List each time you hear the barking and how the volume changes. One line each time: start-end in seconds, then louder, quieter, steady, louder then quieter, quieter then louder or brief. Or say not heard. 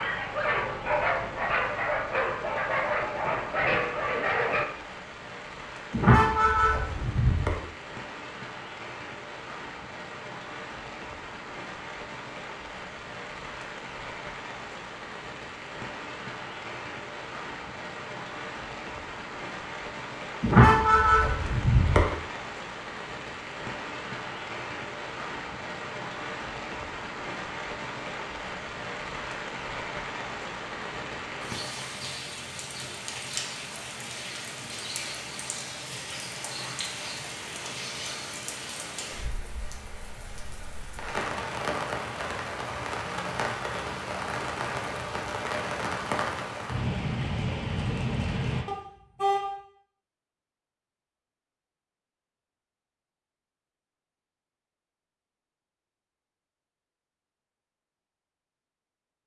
0.0-4.7 steady.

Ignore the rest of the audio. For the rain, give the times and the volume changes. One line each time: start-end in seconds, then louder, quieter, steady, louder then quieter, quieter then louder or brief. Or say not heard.
0.0-48.6 louder.